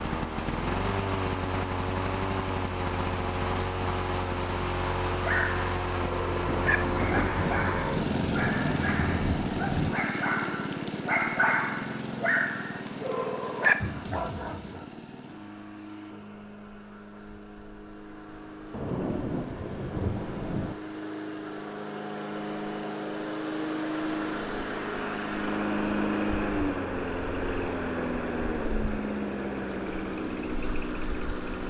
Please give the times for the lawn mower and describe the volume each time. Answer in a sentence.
The lawn mower can be heard from 0.0 to 31.6 s, getting quieter then louder.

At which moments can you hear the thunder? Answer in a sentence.
The thunder can be heard from 6.2 to 9.9 s and from 18.7 to 20.8 s.